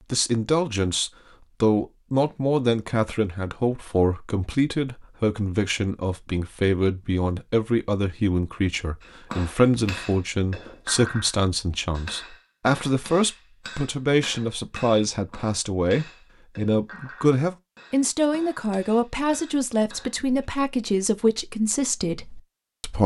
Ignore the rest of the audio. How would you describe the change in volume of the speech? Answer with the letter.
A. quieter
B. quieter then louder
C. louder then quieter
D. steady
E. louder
D.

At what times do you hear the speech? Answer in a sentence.
You can hear the speech from 0.1 to 23.0 s.